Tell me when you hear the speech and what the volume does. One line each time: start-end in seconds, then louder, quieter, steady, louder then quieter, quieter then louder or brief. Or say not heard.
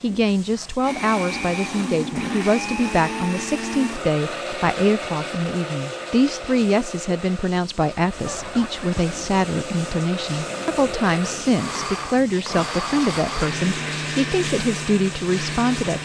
0.0-15.9 steady.